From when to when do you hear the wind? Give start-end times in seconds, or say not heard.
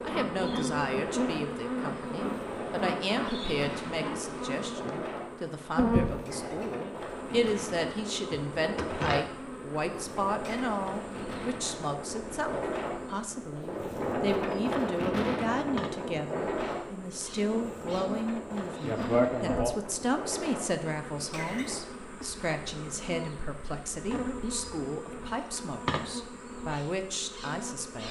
0.0-21.9.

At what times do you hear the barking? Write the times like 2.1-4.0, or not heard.
not heard.